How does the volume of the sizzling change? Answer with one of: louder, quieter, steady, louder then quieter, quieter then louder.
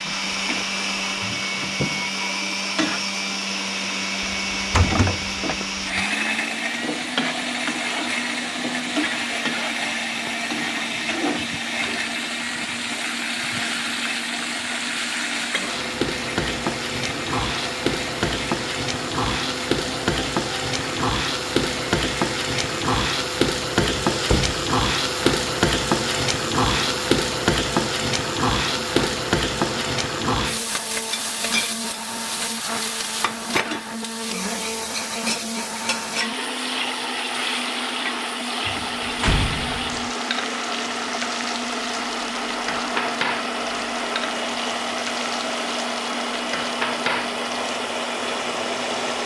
louder then quieter.